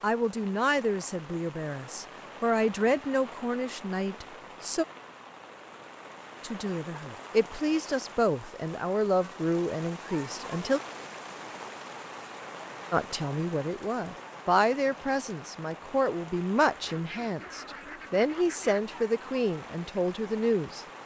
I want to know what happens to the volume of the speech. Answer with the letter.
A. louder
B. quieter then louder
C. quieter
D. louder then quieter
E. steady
E.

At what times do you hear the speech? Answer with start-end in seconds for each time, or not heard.
0.0-4.8, 6.4-10.8, 12.9-20.9.